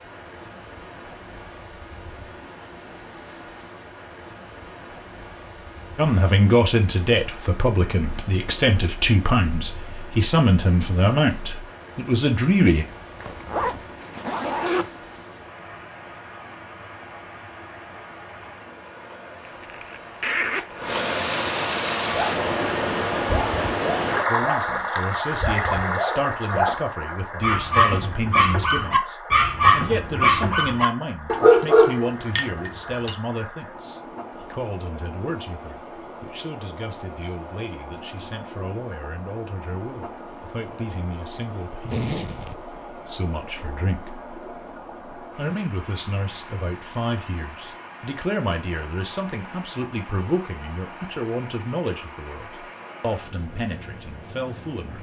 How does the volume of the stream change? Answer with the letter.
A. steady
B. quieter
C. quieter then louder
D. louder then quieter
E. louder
D.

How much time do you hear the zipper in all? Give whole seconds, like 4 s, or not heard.
4 s.